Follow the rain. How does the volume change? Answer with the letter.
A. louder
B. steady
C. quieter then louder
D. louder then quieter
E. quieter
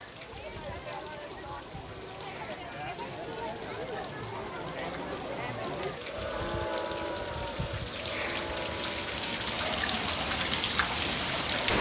A.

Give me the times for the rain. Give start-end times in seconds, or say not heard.
0.0-11.7.